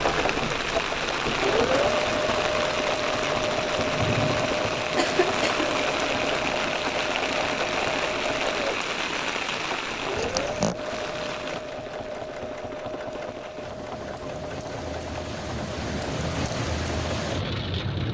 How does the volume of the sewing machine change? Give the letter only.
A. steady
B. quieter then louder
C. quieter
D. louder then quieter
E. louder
C.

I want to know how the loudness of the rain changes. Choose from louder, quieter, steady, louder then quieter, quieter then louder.
quieter then louder.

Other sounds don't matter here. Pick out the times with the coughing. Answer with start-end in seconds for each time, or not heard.
5.0-5.7, 10.2-10.8.